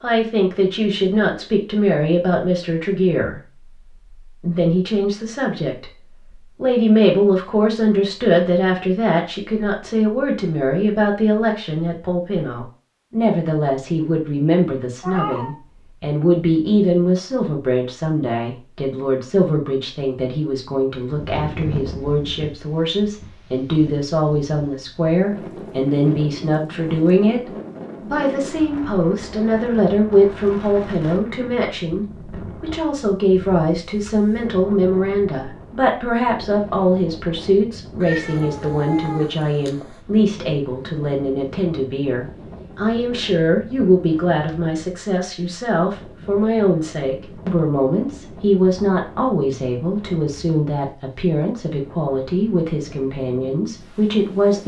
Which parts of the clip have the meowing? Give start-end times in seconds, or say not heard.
15.0-15.6, 38.0-40.0.